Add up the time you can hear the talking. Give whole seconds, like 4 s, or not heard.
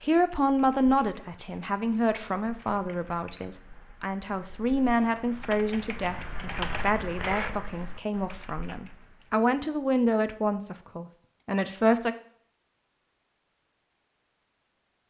12 s.